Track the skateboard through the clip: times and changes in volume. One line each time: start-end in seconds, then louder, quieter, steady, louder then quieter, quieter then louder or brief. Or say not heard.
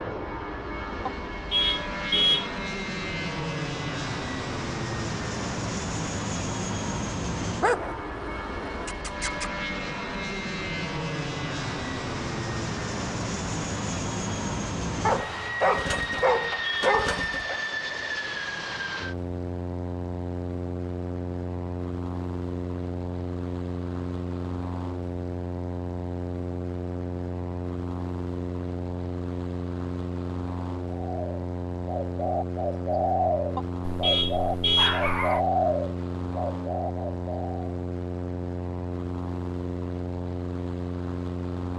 not heard.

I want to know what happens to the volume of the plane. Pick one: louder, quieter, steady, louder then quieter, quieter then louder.
steady.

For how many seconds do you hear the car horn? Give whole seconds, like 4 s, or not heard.
4 s.